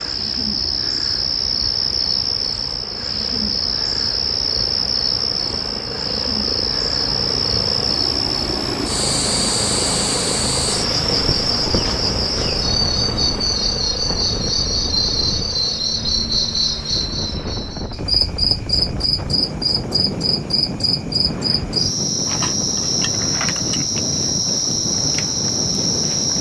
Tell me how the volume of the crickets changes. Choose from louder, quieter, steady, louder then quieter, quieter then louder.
steady.